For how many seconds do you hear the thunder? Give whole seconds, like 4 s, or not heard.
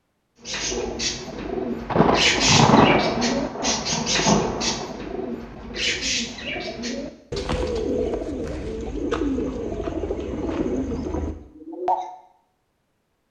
3 s.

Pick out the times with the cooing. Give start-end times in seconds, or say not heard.
0.5-12.1.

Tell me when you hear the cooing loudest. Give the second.
2 s.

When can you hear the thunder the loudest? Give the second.
3 s.